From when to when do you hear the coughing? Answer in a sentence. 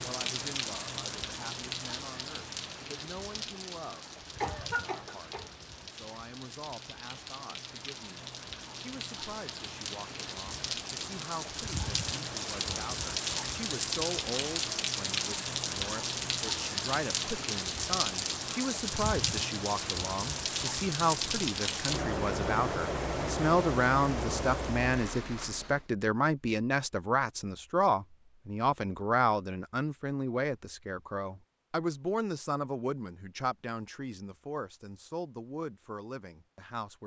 The coughing can be heard from 4.4 to 5.5 s.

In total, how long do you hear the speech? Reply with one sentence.
The speech can be heard for 37 seconds in total.